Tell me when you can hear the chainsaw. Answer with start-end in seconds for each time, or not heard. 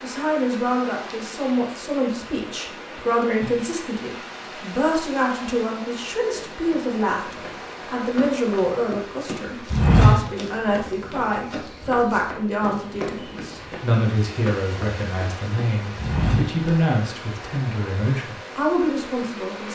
not heard.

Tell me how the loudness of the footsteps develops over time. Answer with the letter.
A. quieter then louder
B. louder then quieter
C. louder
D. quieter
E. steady
B.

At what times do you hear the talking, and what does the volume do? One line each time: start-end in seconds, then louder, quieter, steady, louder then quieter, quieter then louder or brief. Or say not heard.
0.0-19.7 steady.